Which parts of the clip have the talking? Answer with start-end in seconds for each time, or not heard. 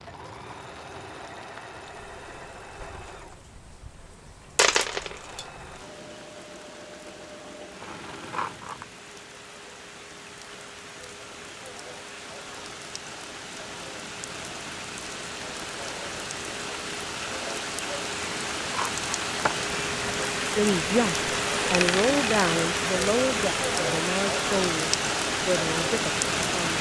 20.6-26.7.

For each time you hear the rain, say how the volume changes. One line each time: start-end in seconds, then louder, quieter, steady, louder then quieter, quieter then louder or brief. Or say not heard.
0.0-26.7 louder.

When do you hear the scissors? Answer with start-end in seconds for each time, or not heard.
7.8-8.9, 18.2-19.7.